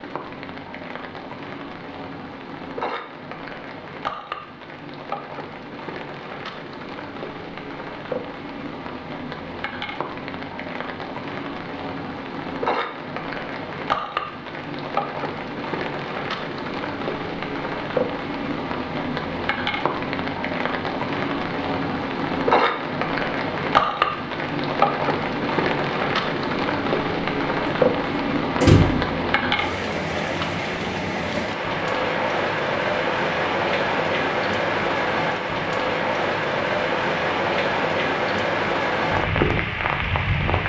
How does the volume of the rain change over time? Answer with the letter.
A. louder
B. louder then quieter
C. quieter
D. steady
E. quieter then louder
A.